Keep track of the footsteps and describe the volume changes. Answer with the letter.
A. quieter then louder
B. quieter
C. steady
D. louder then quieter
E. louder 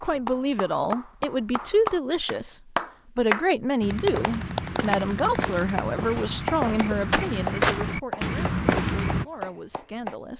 E.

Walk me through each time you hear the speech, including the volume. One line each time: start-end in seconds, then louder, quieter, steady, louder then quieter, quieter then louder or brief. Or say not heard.
0.0-10.3 quieter.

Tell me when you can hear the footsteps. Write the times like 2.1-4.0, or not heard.
3.8-9.2.